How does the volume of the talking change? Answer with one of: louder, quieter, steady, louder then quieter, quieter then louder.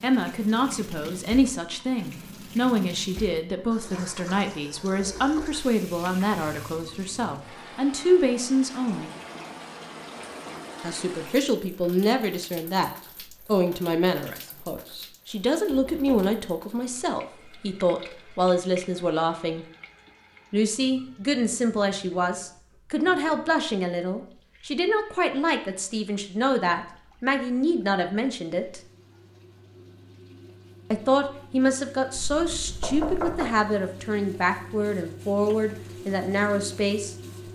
steady.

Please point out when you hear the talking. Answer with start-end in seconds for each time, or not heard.
0.0-9.1, 10.8-19.6, 20.5-28.8, 30.9-37.1.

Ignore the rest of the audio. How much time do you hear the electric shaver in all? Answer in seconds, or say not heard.
not heard.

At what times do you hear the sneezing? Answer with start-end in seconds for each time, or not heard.
not heard.